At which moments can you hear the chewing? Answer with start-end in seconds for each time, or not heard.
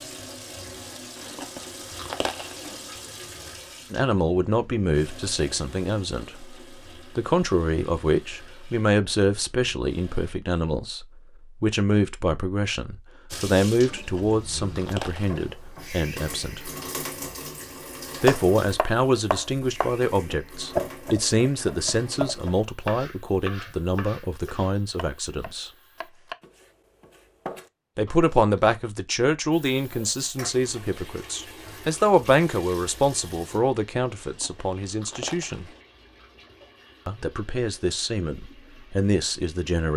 1.1-2.8, 13.9-15.6, 34.1-35.8.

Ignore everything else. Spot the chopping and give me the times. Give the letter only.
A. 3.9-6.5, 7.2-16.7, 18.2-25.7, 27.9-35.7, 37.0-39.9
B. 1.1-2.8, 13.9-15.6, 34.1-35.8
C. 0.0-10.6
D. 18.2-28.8
D.